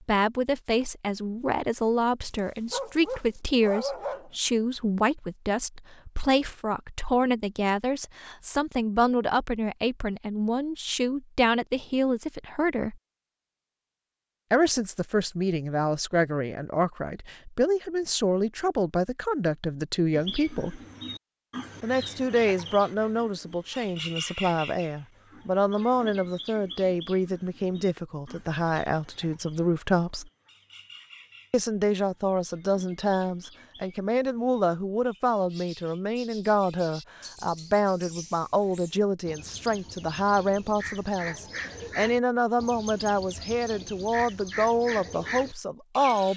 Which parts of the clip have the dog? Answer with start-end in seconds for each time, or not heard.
2.7-4.3.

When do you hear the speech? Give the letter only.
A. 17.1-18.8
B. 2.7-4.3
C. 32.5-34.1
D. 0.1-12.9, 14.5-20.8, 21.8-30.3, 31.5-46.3
D.